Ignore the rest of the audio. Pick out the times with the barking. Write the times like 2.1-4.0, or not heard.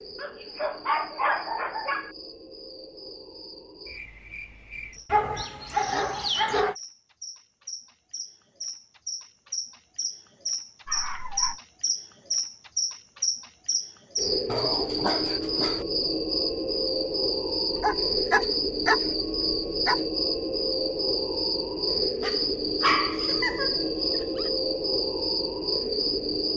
0.1-2.1, 5.1-6.8, 10.8-11.6, 14.4-15.8, 17.8-20.0, 22.2-24.5.